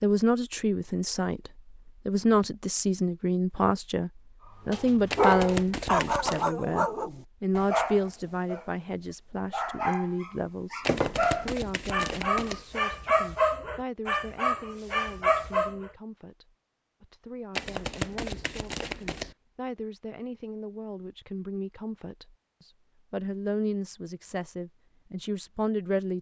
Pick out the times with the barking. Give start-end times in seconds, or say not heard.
4.7-15.9.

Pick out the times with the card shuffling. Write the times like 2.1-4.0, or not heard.
5.1-6.5, 10.8-12.7, 17.6-19.4.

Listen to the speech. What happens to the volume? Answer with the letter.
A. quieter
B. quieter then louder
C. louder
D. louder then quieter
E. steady
B.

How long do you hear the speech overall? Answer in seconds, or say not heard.
26 s.